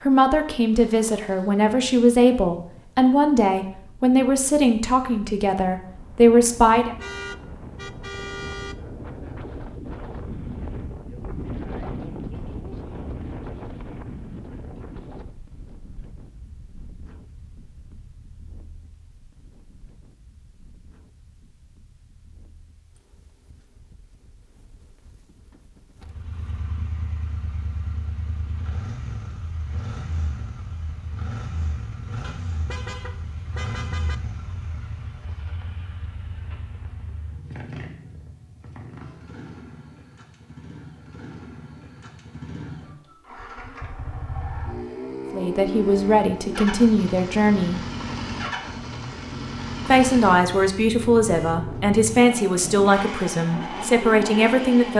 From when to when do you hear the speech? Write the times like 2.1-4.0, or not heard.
0.0-7.0, 45.3-47.8, 49.9-54.9.